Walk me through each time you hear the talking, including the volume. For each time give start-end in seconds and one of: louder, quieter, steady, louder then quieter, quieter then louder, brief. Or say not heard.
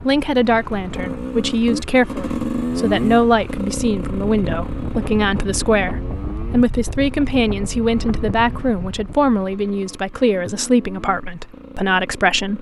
0.0-12.5 steady.